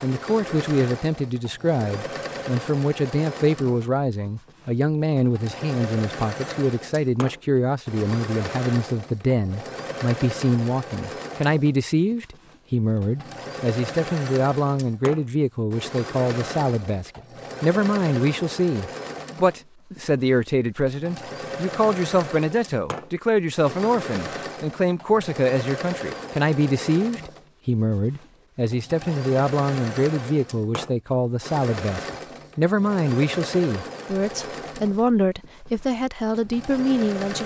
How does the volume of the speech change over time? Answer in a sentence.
The volume of the speech stays about the same.